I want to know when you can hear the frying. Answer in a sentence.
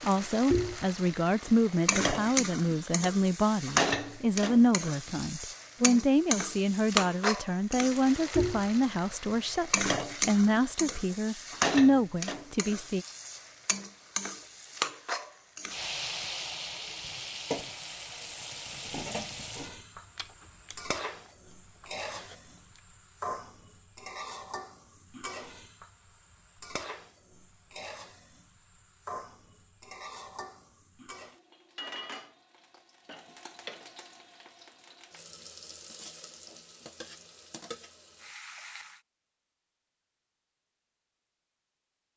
You can hear the frying from 0.0 to 39.0 s.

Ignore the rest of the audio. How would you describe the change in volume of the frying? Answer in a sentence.
The loudness of the frying goes down.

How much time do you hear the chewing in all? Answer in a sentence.
The chewing can be heard for 3 seconds in total.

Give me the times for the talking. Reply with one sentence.
You can hear the talking from 0.0 to 13.1 s.